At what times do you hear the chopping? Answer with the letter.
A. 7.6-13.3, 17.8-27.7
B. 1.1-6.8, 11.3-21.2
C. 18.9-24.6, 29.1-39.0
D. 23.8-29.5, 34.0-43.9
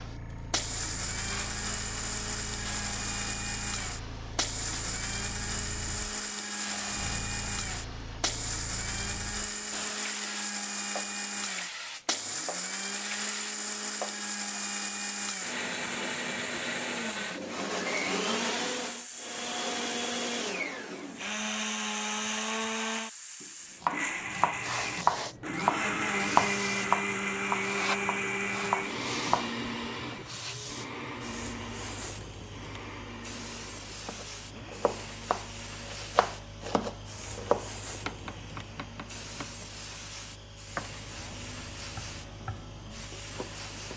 D.